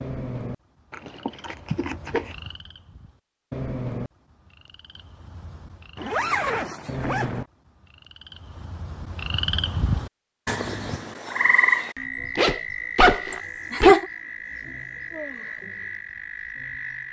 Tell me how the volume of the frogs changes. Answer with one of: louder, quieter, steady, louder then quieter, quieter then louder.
louder then quieter.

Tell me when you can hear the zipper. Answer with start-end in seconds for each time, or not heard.
0.9-2.4, 6.0-7.5, 12.3-13.9.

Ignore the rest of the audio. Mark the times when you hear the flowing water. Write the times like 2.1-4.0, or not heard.
not heard.